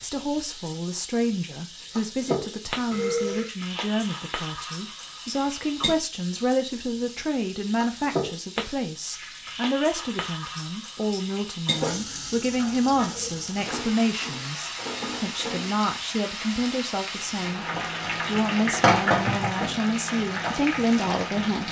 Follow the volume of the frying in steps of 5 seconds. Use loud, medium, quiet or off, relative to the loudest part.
medium, medium, medium, loud, loud.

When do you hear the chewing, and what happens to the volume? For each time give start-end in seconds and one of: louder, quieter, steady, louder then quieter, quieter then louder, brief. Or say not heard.
not heard.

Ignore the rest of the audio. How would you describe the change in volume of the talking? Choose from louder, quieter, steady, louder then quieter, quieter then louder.
steady.